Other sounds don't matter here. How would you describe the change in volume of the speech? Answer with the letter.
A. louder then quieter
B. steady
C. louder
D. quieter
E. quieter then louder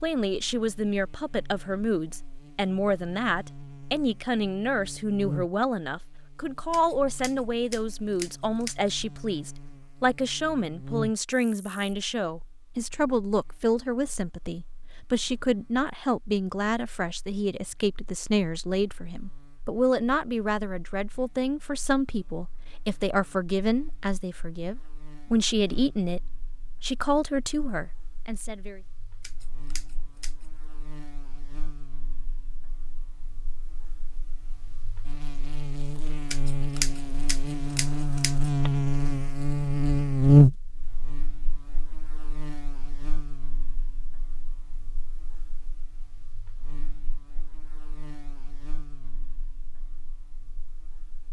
B.